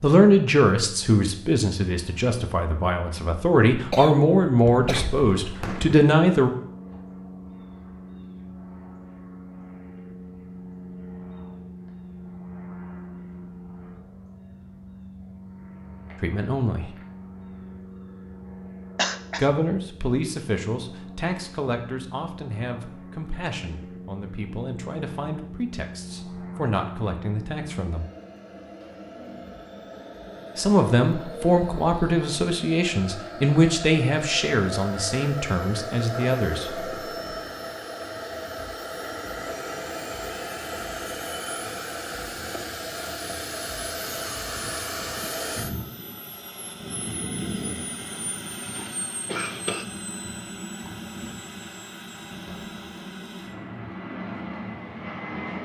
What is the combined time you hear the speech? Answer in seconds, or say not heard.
22 s.